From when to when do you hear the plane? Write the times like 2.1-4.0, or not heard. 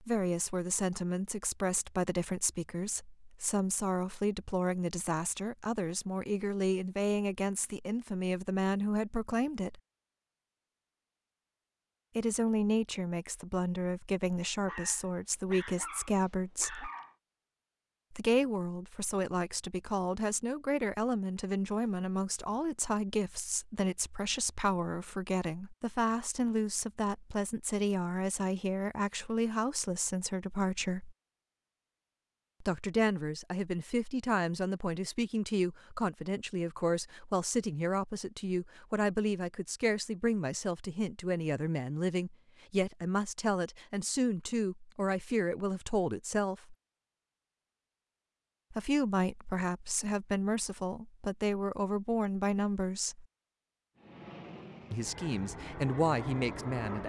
54.0-57.0.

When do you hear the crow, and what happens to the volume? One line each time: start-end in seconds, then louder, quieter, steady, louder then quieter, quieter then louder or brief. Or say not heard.
not heard.